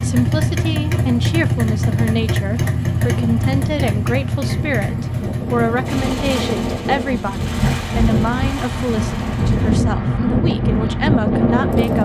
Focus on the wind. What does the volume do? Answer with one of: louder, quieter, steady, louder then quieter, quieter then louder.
louder.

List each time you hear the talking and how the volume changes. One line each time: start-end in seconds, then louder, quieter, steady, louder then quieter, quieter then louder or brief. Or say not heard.
0.0-11.9 steady.